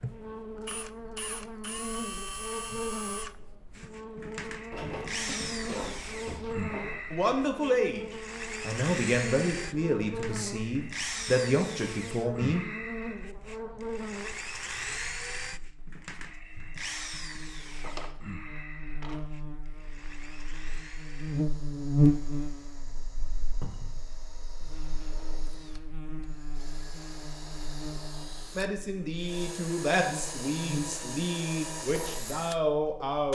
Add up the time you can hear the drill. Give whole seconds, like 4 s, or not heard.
33 s.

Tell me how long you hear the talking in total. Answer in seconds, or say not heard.
10 s.